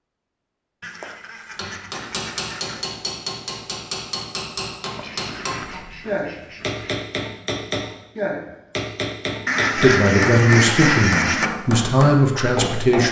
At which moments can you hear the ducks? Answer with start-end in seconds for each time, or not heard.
0.8-2.9, 5.0-7.0, 9.4-11.5.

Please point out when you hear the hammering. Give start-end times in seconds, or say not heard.
1.6-13.0.